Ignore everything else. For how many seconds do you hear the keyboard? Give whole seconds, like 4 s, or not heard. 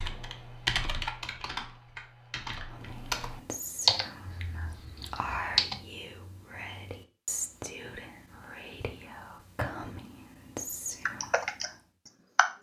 7 s.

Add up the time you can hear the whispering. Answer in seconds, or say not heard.
9 s.